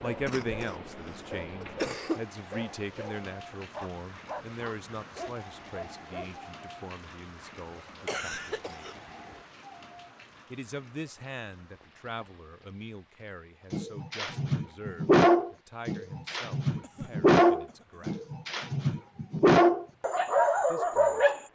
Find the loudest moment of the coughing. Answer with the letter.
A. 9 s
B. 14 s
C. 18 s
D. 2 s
D.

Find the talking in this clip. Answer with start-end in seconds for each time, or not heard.
0.0-9.1, 10.5-18.2, 20.6-21.4.